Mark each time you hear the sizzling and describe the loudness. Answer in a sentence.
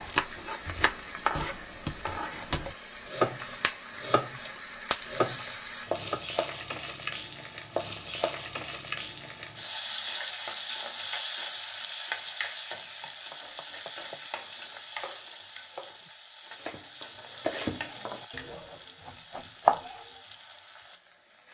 The sizzling can be heard from 0.0 to 21.4 s, getting quieter.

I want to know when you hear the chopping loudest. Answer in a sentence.
The loudest moment of the chopping is at 20 seconds.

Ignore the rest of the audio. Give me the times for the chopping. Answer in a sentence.
The chopping can be heard from 0.0 to 6.2 s and from 13.0 to 20.1 s.